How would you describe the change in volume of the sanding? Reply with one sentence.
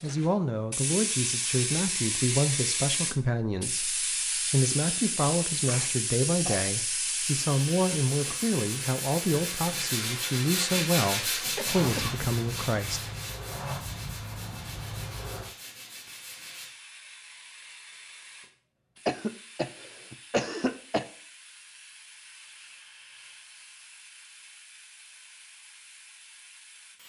The loudness of the sanding goes up, then down.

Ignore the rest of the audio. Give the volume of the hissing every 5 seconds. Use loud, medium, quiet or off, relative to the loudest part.
loud, loud, medium, quiet, quiet, quiet.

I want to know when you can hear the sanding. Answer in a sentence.
The sanding can be heard from 7.2 to 16.8 s.